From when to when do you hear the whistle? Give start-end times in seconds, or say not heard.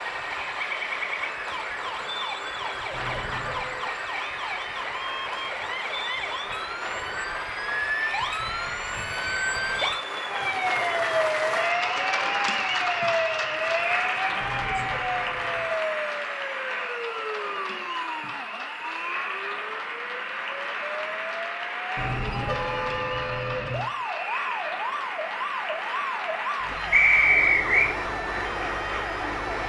26.9-27.9.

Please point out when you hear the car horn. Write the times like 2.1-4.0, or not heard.
2.9-3.9, 14.4-15.8, 21.9-23.9.